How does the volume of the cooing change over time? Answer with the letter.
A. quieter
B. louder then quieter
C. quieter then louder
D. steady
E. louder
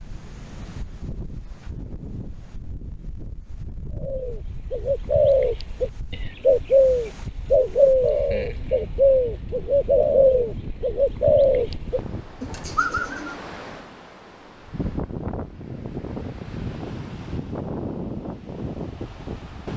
D.